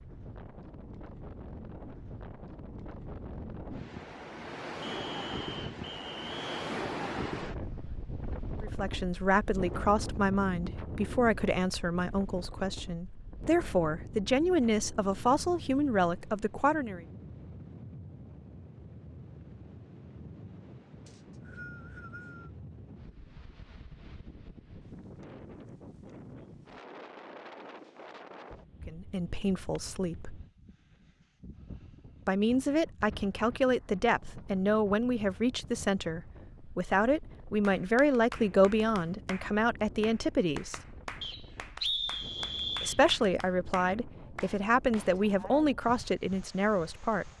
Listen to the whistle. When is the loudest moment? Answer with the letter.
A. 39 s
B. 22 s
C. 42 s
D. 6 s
C.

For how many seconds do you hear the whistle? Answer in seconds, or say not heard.
5 s.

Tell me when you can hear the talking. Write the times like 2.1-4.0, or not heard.
8.6-17.1, 28.9-30.4, 32.2-40.8, 42.8-47.2.